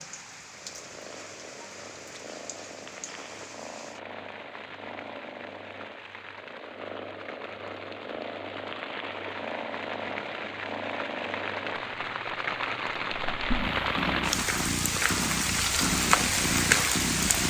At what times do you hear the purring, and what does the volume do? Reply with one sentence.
The purring can be heard from 0.0 to 17.4 s, getting louder.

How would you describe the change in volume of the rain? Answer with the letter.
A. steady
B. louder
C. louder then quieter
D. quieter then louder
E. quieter
B.